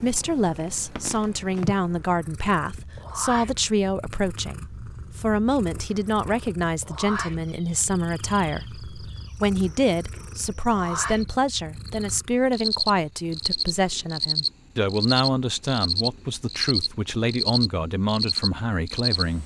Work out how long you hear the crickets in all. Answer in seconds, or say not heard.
12 s.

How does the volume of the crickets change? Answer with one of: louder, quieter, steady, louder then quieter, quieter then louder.
louder.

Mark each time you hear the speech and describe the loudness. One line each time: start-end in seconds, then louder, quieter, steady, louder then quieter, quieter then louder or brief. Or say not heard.
0.0-19.4 steady.